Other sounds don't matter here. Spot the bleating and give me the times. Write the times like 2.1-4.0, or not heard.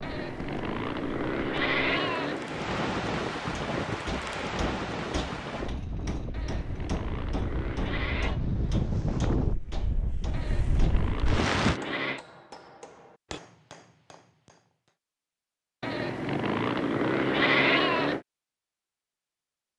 0.0-2.8, 6.3-8.4, 10.3-12.2, 15.8-18.2.